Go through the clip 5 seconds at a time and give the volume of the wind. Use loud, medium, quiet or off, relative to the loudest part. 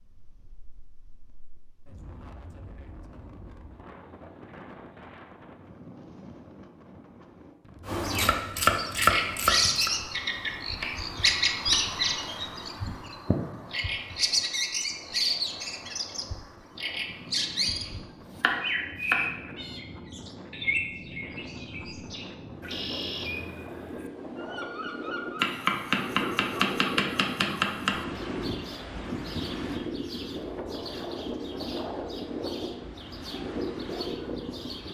quiet, quiet, quiet, medium, medium, loud, loud.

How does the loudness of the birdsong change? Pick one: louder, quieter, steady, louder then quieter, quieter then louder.
quieter.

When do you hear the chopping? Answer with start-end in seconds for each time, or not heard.
8.2-9.9, 18.4-19.3, 25.4-28.0.